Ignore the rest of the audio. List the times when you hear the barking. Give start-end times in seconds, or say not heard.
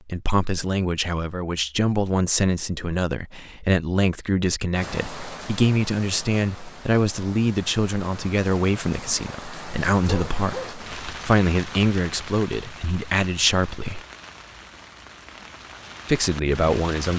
10.0-10.8.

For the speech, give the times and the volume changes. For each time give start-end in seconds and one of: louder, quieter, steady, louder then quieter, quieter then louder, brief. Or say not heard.
0.1-14.0 steady
16.1-17.1 brief.